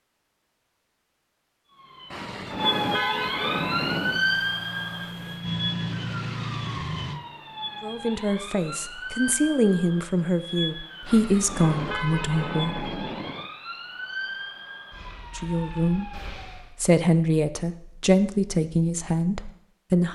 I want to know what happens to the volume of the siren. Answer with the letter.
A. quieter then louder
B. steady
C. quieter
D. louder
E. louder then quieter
C.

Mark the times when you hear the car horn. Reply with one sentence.
You can hear the car horn from 2.1 to 4.2 s and from 11.1 to 13.5 s.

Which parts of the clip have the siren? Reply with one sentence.
You can hear the siren from 1.7 to 16.7 s.